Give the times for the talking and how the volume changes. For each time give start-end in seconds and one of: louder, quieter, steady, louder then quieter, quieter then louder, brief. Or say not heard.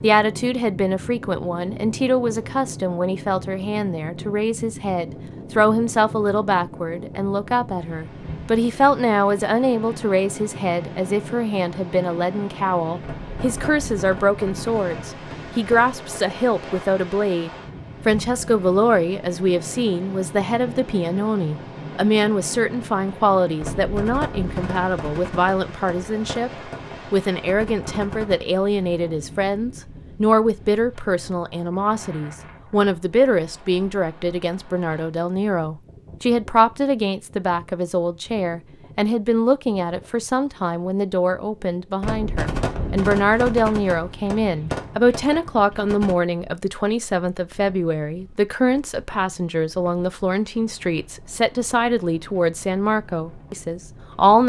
0.0-54.4 steady.